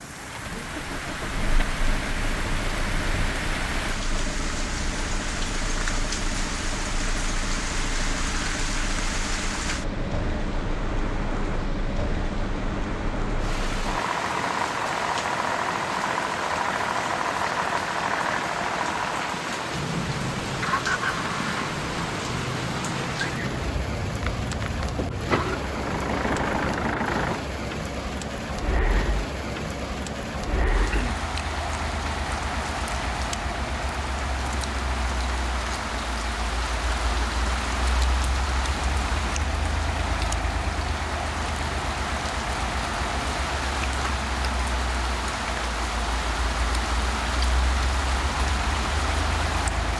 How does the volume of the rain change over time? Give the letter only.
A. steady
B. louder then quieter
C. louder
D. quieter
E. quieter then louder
A.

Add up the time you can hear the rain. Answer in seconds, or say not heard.
50 s.